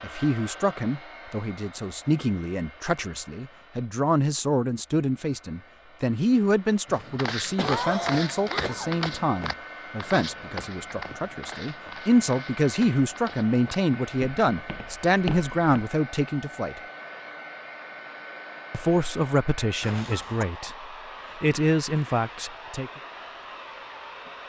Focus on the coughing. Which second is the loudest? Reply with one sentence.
The loudest moment of the coughing is at 8 seconds.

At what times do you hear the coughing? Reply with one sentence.
The coughing can be heard from 7.5 to 9.0 s and from 19.8 to 20.4 s.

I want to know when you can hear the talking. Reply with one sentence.
You can hear the talking from 0.0 to 16.8 s and from 18.7 to 22.9 s.